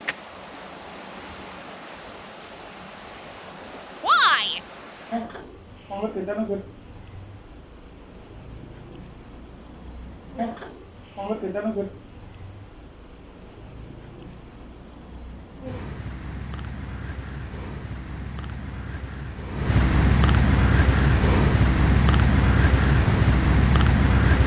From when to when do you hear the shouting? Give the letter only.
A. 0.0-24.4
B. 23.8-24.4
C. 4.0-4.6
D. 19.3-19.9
C.